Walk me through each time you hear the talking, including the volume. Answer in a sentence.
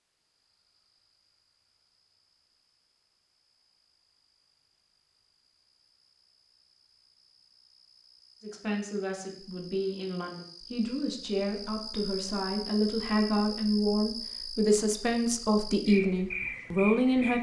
The talking can be heard from 8.4 to 17.3 s, getting louder.